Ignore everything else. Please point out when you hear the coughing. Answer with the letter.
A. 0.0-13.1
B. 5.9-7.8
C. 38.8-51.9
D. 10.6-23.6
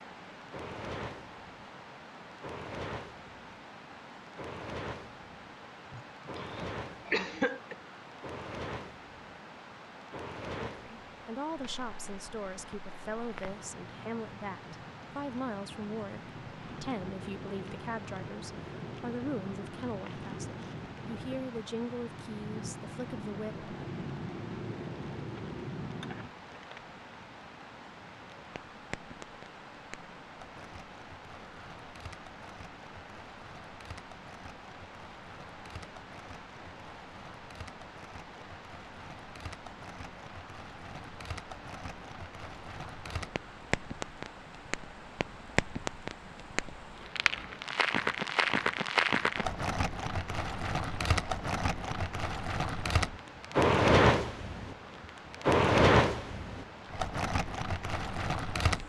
B.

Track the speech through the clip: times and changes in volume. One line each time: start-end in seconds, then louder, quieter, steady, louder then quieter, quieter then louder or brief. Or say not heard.
10.6-23.6 steady.